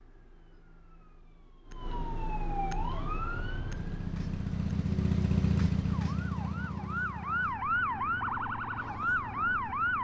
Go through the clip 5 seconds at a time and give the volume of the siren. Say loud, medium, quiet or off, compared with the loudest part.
medium, loud.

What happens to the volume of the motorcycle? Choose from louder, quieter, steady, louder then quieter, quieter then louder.
louder then quieter.